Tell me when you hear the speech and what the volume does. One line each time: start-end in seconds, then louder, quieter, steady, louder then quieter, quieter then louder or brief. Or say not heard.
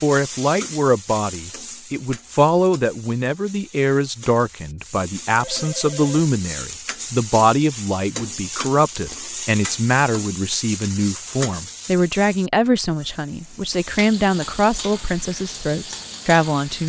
0.0-16.8 steady.